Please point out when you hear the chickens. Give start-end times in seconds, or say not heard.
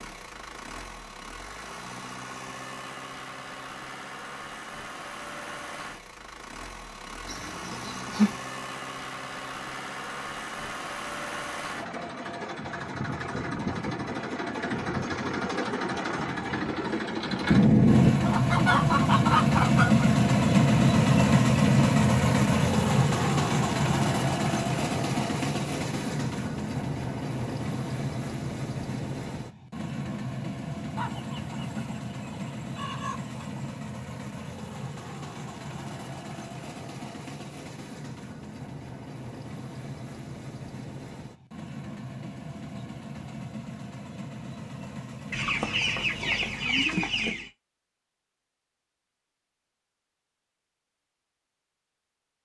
7.2-8.3, 17.4-20.1, 30.9-33.7, 45.3-47.5.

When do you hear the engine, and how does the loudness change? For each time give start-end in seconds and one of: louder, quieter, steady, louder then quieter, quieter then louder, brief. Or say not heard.
0.0-46.9 louder then quieter.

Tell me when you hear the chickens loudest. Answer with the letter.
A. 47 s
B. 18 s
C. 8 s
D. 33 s
B.